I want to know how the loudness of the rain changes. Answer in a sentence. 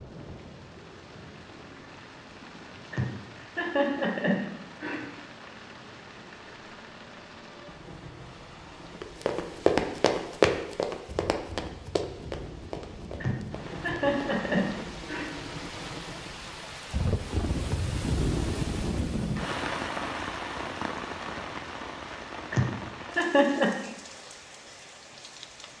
The loudness of the rain goes up, then down.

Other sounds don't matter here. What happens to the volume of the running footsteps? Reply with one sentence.
The loudness of the running footsteps goes down.